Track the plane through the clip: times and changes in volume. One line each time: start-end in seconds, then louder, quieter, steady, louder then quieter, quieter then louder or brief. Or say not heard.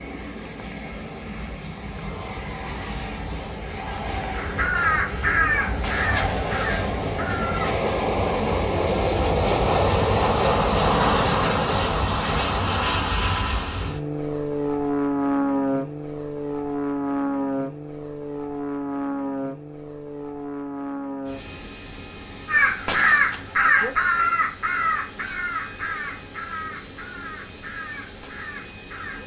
0.0-29.2 louder then quieter.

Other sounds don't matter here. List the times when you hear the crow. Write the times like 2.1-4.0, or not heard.
4.3-7.8, 22.4-29.2.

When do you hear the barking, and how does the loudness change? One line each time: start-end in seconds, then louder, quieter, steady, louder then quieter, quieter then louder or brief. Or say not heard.
not heard.